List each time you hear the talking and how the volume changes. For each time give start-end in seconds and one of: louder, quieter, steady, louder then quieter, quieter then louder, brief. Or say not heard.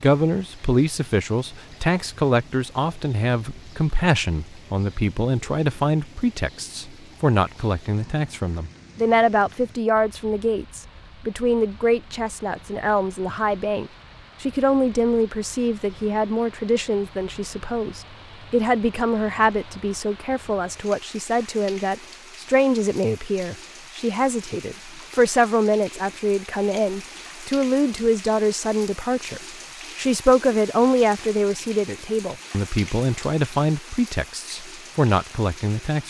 0.0-36.0 steady.